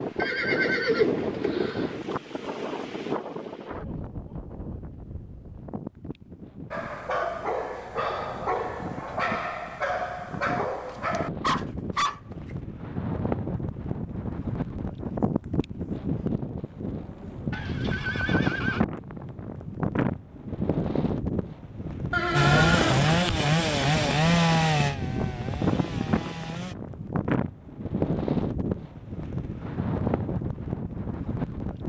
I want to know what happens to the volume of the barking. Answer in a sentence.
The loudness of the barking stays about the same.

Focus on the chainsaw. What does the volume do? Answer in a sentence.
The loudness of the chainsaw goes down.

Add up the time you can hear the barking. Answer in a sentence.
You can hear the barking for 6 seconds altogether.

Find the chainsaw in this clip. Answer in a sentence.
You can hear the chainsaw from 22.3 to 26.8 s.